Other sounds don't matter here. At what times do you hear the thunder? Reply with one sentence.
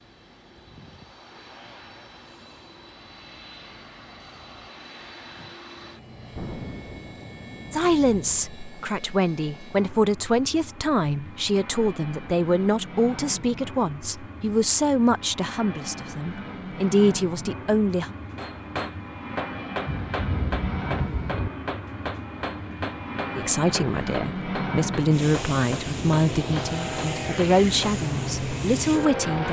The thunder can be heard from 6.3 to 8.1 s and from 19.9 to 21.5 s.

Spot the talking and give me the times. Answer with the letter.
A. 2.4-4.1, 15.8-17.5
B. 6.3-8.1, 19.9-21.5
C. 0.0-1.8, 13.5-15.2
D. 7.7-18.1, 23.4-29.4
D.